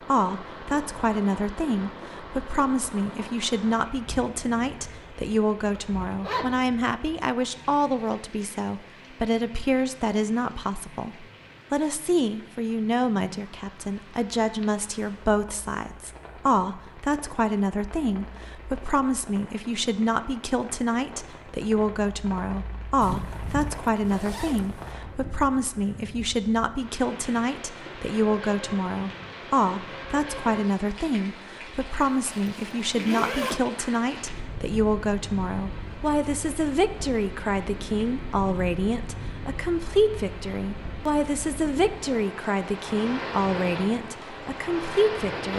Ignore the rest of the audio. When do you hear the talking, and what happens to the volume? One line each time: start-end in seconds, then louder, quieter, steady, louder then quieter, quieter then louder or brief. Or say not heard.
0.1-45.5 steady.